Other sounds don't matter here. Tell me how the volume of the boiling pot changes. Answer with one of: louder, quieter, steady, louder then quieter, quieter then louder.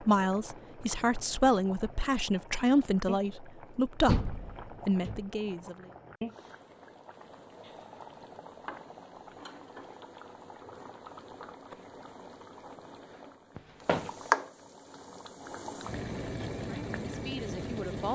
louder.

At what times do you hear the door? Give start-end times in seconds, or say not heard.
4.0-5.2, 13.6-14.3.